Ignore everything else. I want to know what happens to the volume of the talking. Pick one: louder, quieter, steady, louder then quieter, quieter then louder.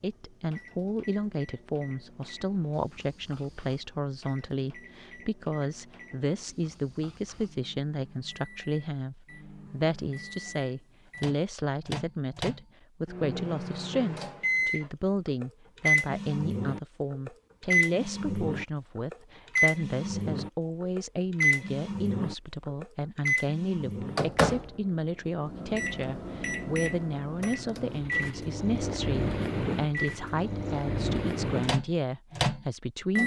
steady.